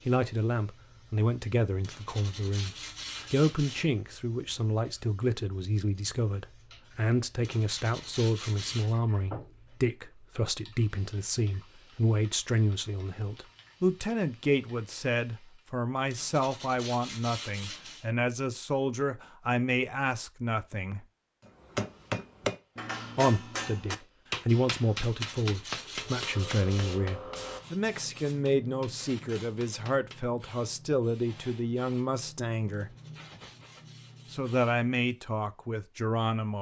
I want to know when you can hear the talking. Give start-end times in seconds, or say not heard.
0.1-21.1, 23.1-33.0, 34.3-36.5.